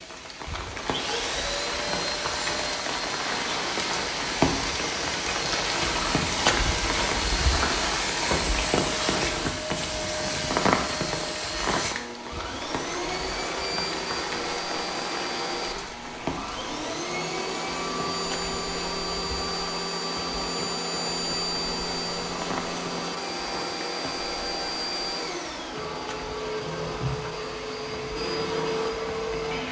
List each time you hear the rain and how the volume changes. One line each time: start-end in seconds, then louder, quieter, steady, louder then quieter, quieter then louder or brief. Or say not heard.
0.0-29.6 quieter.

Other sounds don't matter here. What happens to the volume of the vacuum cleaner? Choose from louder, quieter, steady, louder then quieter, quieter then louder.
steady.